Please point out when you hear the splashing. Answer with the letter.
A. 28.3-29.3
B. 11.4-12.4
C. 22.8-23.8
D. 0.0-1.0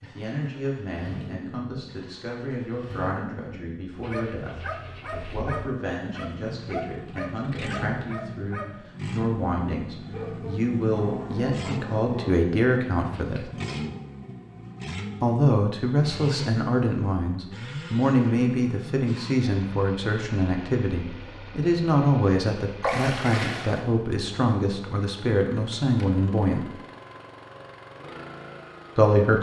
C.